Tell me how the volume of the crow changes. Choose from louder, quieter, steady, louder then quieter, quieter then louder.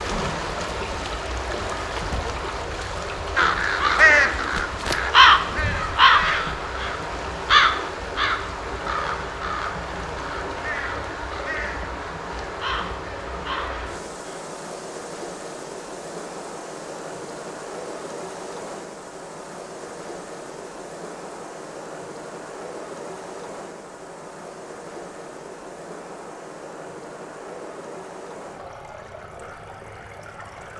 quieter.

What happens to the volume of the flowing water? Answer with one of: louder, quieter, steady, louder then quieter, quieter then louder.
quieter.